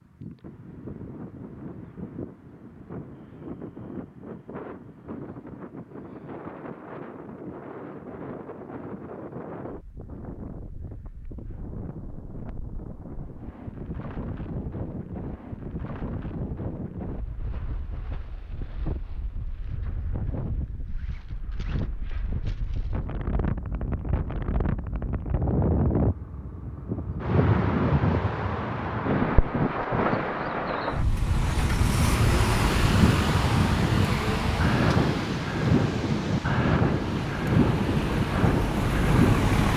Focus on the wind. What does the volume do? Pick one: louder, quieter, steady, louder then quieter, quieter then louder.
louder.